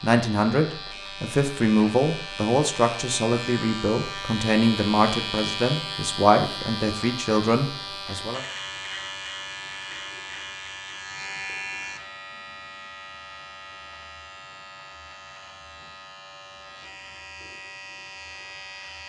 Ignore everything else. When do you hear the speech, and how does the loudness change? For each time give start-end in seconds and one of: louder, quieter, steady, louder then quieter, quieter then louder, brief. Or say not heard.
0.0-8.4 steady.